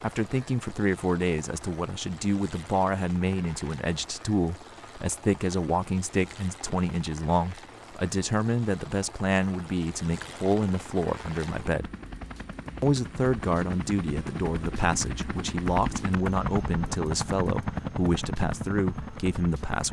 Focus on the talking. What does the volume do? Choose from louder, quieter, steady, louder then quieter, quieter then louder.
steady.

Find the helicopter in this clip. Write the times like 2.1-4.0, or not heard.
0.0-19.8.